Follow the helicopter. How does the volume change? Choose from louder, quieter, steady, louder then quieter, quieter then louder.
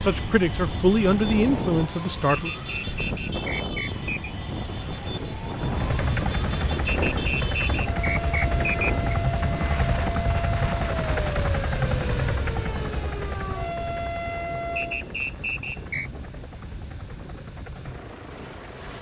quieter.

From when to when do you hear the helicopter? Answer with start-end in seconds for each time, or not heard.
5.4-18.9.